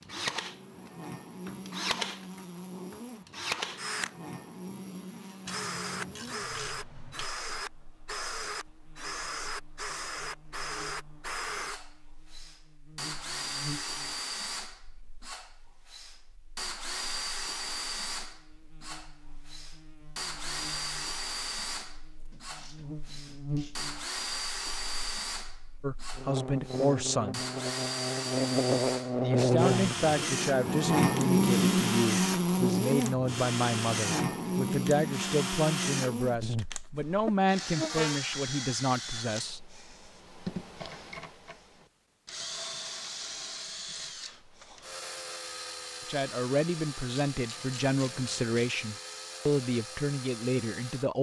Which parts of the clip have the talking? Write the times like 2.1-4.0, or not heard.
25.8-27.4, 29.2-39.6, 46.0-51.1.